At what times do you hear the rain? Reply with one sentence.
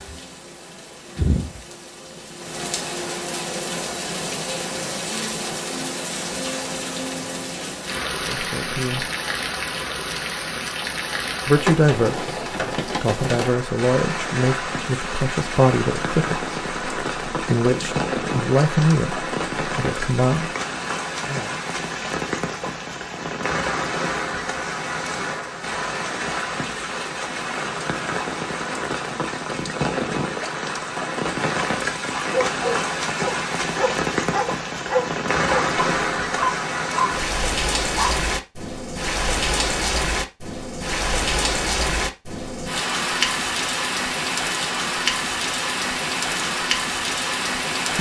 You can hear the rain from 0.0 to 47.9 s.